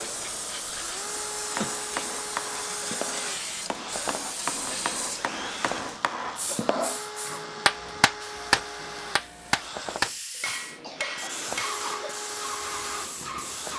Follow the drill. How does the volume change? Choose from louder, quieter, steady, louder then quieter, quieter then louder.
steady.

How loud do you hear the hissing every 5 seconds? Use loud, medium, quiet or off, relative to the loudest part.
loud, medium, loud.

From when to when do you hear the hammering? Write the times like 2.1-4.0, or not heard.
1.6-11.8.